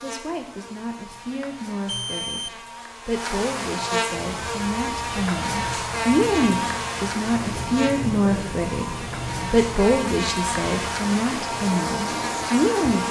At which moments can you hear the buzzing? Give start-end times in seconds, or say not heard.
0.0-13.0.